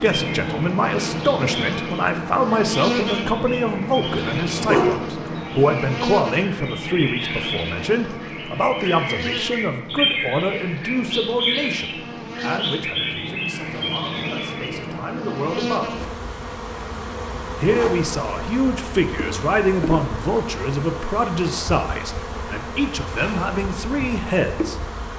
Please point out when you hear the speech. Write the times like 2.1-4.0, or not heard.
0.0-16.1, 17.6-24.8.